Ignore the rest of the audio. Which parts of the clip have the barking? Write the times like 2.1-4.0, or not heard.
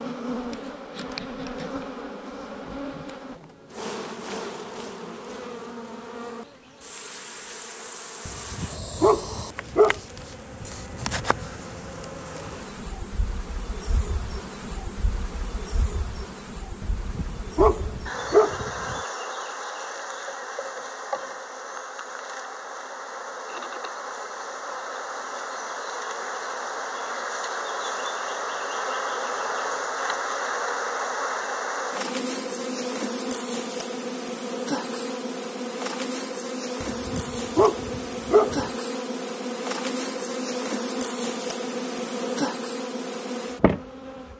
8.2-10.0, 16.8-19.0, 36.8-38.7.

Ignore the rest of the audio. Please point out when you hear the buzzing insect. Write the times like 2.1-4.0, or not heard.
0.0-44.3.